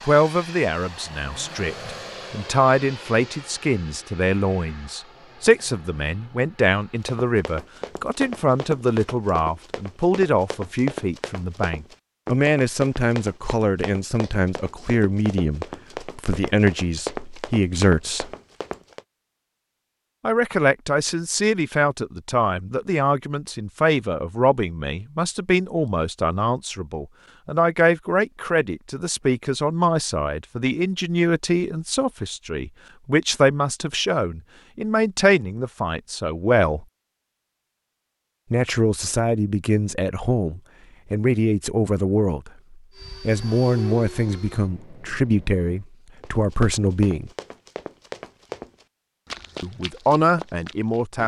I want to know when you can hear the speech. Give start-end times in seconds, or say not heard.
0.1-18.3, 20.2-36.9, 38.5-42.5, 43.2-47.3, 49.6-51.2.